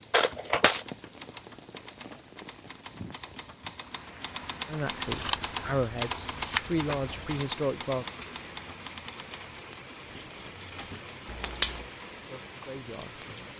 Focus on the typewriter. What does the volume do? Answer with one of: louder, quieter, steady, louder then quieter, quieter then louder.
louder then quieter.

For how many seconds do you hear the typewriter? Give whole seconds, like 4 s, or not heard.
11 s.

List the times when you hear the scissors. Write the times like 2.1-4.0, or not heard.
0.1-0.8, 5.0-7.4, 11.3-11.8.